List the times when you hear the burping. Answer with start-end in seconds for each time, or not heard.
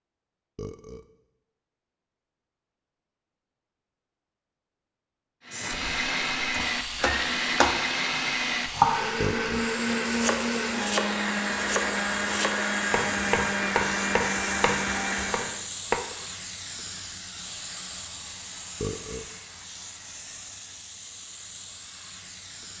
0.6-1.1, 9.2-9.7, 18.8-19.3.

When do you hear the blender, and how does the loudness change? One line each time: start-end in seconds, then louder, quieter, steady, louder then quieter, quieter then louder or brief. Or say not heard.
5.5-15.7 steady.